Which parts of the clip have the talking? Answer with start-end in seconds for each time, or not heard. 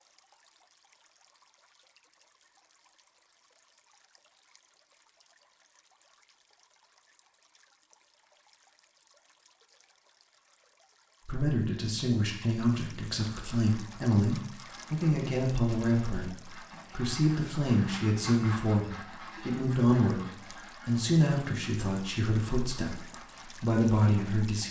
11.2-24.6.